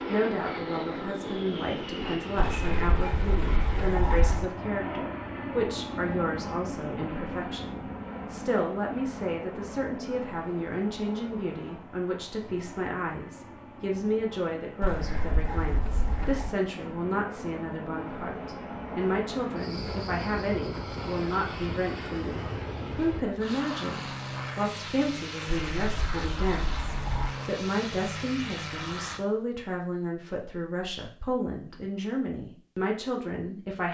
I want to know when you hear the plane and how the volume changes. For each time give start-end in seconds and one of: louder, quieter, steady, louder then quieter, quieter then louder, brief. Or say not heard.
0.0-29.2 quieter then louder.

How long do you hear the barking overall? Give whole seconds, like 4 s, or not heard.
6 s.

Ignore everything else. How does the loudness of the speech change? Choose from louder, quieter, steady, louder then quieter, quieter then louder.
steady.